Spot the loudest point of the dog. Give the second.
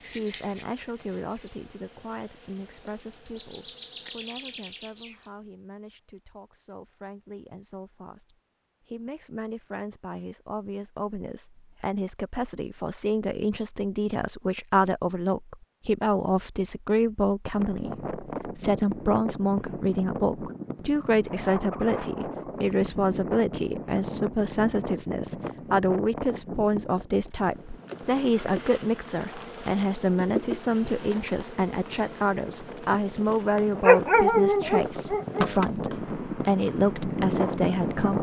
34 s.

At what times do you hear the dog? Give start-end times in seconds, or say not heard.
33.5-35.5.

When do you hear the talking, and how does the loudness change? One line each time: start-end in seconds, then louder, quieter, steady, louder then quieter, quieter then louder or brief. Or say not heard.
0.1-38.1 louder.